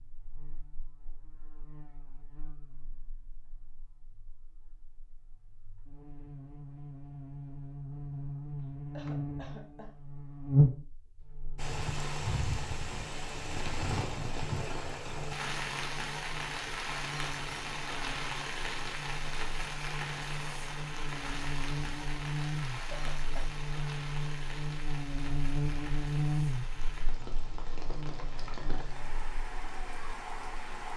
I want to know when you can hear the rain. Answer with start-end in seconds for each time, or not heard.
11.6-30.9.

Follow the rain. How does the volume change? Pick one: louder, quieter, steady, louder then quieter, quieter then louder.
quieter.